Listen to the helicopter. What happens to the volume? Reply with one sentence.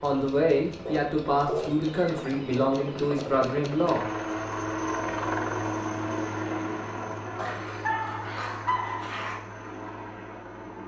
The volume of the helicopter goes up, then down.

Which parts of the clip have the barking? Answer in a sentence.
The barking can be heard from 0.8 to 1.8 s and from 7.3 to 9.4 s.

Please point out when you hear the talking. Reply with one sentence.
The talking can be heard from 0.0 to 4.0 s.